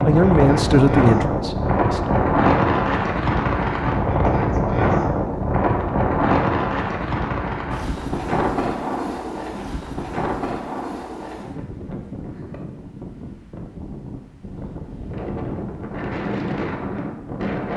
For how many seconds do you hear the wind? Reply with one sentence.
The wind can be heard for 18 seconds in total.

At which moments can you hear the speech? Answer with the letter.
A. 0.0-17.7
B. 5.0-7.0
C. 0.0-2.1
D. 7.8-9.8
C.